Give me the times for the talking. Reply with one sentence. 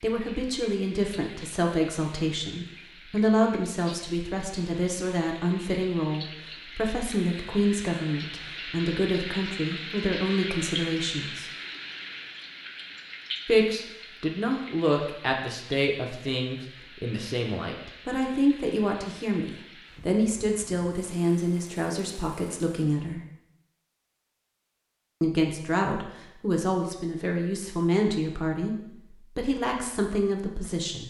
The talking can be heard from 0.0 to 11.5 s, from 13.4 to 23.2 s and from 25.2 to 31.0 s.